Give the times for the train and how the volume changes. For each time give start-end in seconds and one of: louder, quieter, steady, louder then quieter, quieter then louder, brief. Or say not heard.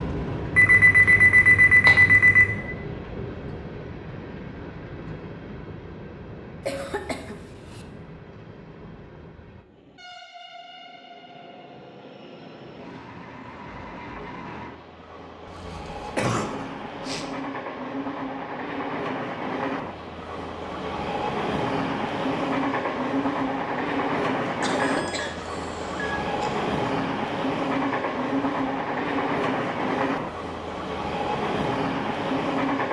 0.0-32.8 quieter then louder.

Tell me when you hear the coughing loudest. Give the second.
16 s.